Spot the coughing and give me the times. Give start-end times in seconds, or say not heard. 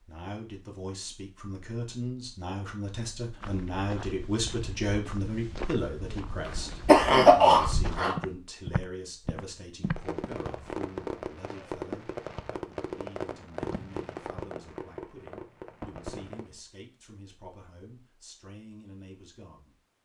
6.5-8.2.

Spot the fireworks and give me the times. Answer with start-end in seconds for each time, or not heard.
9.8-16.6.